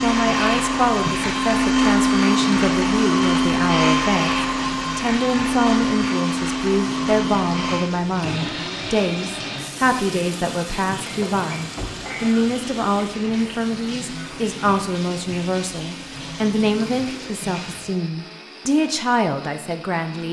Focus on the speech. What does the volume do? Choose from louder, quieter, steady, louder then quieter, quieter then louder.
steady.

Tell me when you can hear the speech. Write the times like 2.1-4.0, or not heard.
0.0-20.2.